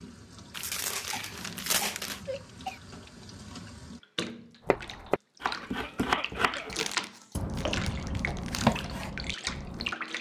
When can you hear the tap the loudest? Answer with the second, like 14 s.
7 s.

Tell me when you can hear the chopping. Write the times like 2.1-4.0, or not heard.
4.7-9.9.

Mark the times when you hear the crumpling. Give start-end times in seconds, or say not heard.
0.5-2.2, 6.7-8.7.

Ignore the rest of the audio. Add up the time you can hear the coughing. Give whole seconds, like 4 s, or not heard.
3 s.